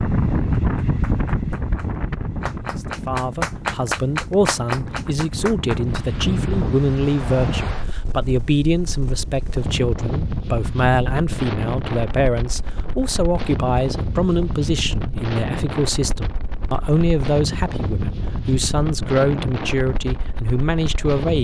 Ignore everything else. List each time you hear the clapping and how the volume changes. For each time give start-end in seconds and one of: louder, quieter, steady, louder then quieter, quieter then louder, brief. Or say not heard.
0.6-6.4 louder then quieter.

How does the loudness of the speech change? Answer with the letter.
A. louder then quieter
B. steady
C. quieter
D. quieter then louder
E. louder
B.